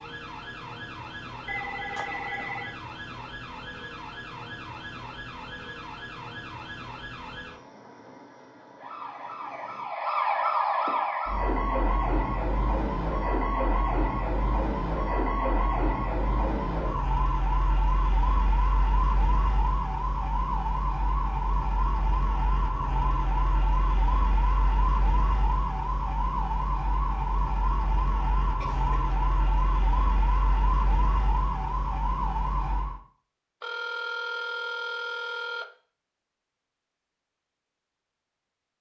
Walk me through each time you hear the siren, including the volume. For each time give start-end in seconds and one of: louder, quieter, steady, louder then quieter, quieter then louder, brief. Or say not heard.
0.0-33.0 louder.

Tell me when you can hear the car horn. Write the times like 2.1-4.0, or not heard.
not heard.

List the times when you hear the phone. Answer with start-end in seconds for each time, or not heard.
1.4-2.8, 33.6-35.7.